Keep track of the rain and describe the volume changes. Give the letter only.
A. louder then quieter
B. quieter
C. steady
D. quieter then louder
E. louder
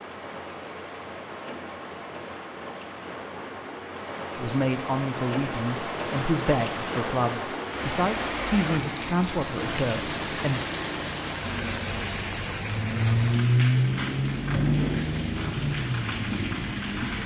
E.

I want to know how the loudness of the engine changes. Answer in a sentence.
The volume of the engine goes down.